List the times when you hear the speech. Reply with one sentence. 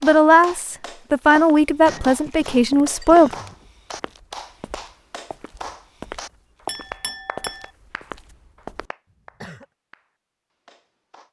The speech can be heard from 0.0 to 3.3 s.